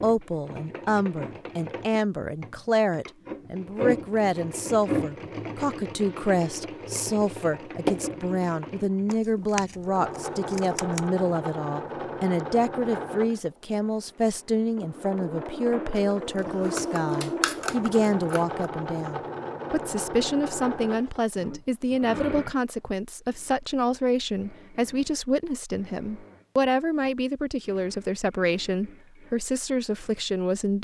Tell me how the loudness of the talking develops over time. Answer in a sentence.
The volume of the talking stays about the same.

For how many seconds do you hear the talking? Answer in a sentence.
You can hear the talking for 31 seconds altogether.